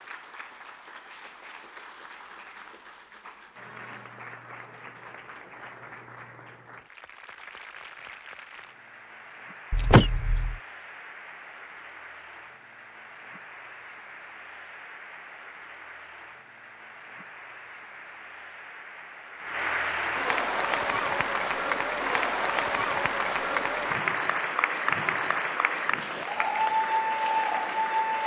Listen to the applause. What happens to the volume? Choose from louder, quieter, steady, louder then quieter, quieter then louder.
louder.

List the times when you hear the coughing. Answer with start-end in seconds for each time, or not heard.
9.7-10.6.